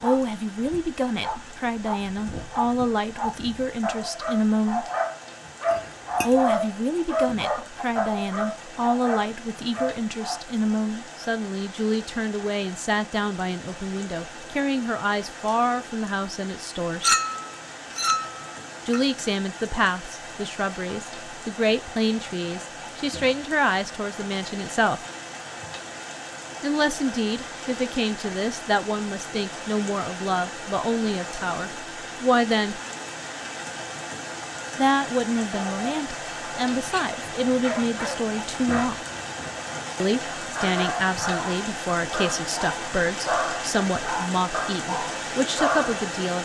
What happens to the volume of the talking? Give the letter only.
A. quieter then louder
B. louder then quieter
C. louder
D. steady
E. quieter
D.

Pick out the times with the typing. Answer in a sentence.
The typing can't be heard in this clip.